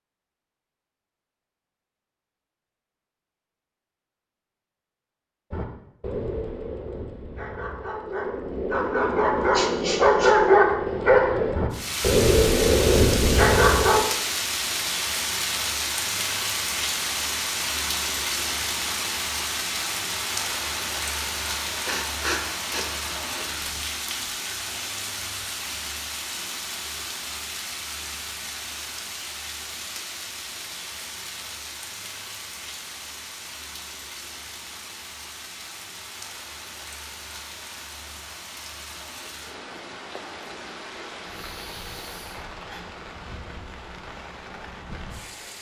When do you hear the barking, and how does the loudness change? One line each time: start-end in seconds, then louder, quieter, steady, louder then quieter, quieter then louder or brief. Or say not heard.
5.5-14.1 louder.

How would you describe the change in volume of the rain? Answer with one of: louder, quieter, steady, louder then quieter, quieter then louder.
quieter.